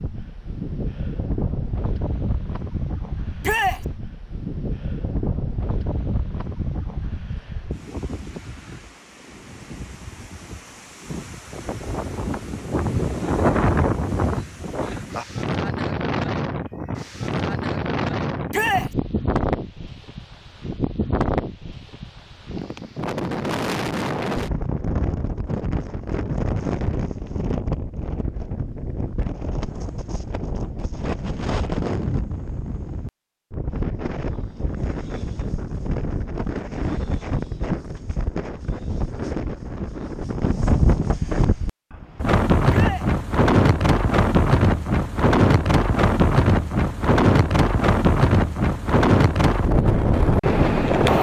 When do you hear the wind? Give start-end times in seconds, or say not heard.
0.0-51.1.